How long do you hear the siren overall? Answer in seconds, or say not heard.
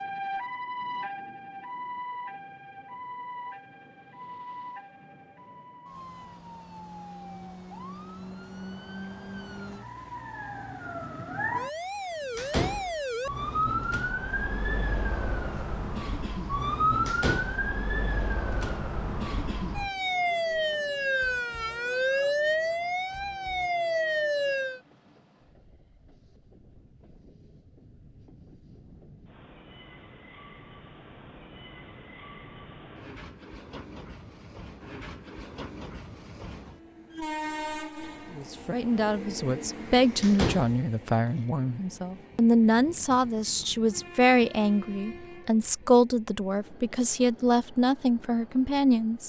25 s.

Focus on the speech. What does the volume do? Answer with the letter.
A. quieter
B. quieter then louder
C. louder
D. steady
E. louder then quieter
D.